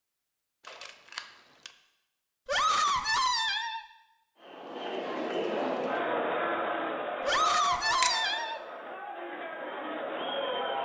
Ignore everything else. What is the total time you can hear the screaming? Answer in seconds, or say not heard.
3 s.